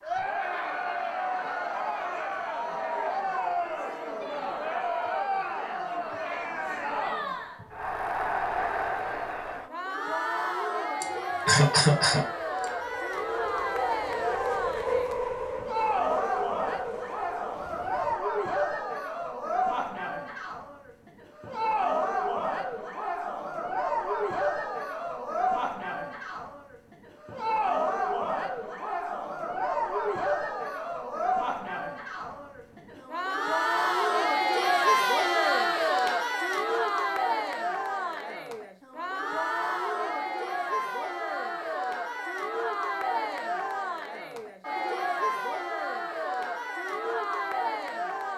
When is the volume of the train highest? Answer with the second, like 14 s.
15 s.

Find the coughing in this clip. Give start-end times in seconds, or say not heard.
11.0-12.7.